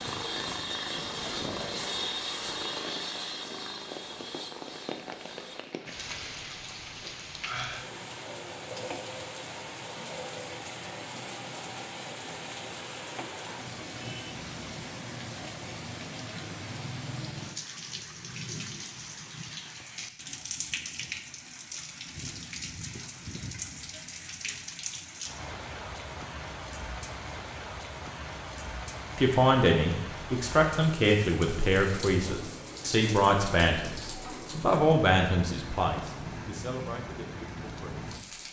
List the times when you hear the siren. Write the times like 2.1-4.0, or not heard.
not heard.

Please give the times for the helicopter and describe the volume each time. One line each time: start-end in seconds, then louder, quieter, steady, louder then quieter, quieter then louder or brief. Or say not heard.
0.0-5.7 quieter.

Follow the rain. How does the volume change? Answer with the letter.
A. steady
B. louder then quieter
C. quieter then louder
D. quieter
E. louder
A.